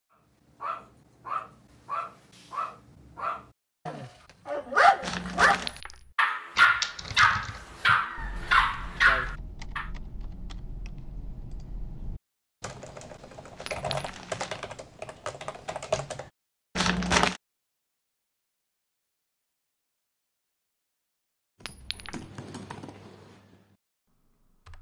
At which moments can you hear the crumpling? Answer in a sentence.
You can hear the crumpling from 5.0 to 5.7 s, from 13.6 to 14.7 s and from 16.8 to 17.4 s.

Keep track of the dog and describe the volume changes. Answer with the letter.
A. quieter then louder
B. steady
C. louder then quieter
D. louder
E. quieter
D.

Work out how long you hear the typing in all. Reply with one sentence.
The typing can be heard for 13 seconds in total.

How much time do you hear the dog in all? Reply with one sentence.
You can hear the dog for 9 seconds altogether.